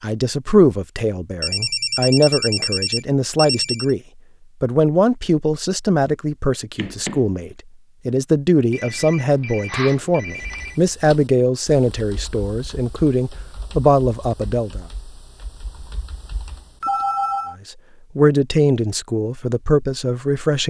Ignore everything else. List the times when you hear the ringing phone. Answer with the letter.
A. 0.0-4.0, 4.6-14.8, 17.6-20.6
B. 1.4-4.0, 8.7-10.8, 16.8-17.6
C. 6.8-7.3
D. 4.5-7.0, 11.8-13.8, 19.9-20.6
B.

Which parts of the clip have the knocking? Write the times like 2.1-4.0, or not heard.
6.8-7.3.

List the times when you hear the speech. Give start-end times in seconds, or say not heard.
0.0-4.0, 4.6-14.8, 17.6-20.6.